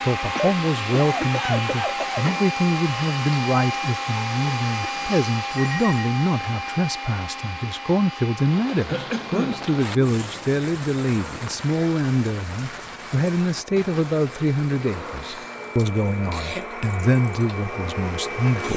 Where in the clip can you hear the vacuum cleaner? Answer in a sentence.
You can hear the vacuum cleaner from 0.0 to 18.7 s.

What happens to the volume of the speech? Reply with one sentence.
The volume of the speech stays about the same.